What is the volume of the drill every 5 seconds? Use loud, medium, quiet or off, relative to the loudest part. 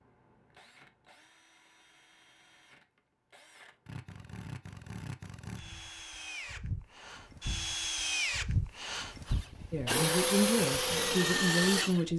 quiet, medium, loud.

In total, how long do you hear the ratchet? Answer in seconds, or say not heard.
not heard.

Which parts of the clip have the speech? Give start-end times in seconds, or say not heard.
9.7-12.1.